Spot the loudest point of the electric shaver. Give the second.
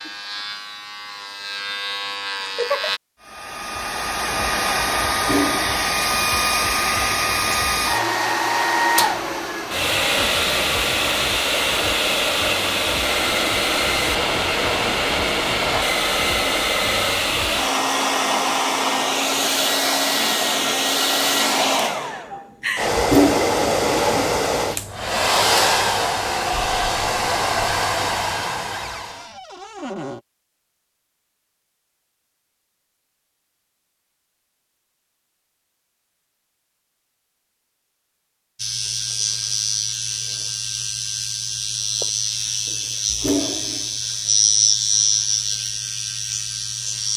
45 s.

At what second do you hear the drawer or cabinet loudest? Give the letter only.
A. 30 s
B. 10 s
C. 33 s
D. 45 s
A.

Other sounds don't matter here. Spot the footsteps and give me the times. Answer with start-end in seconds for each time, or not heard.
not heard.